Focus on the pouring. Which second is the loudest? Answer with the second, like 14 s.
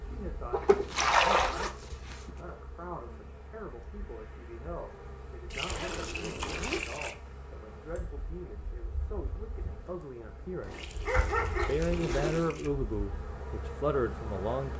1 s.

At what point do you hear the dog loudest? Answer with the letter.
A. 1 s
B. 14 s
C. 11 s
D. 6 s
C.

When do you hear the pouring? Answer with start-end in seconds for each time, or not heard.
0.5-1.6, 5.5-7.2, 10.7-12.7.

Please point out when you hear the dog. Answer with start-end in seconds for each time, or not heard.
10.6-12.5.